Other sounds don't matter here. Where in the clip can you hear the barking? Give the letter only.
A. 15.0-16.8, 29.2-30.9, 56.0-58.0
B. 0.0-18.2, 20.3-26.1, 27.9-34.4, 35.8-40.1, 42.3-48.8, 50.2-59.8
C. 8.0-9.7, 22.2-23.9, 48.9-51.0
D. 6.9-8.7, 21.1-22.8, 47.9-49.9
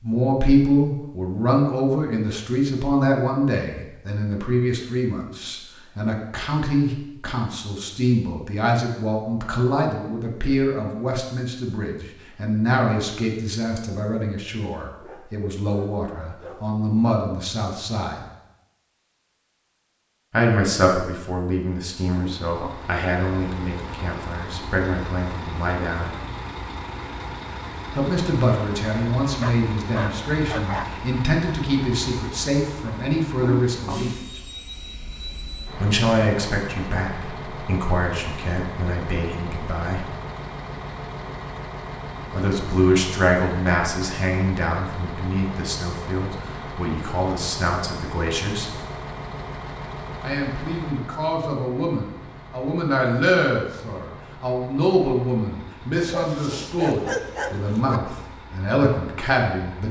A.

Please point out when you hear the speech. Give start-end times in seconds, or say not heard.
0.0-18.2, 20.3-26.1, 27.9-34.4, 35.8-40.1, 42.3-48.8, 50.2-59.8.